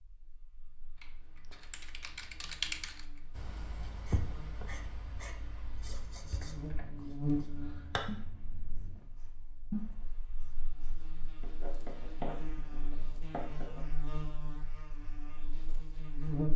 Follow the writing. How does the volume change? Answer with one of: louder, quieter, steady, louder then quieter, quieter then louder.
louder.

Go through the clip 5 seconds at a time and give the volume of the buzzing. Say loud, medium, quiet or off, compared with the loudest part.
quiet, loud, medium, loud.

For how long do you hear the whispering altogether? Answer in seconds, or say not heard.
not heard.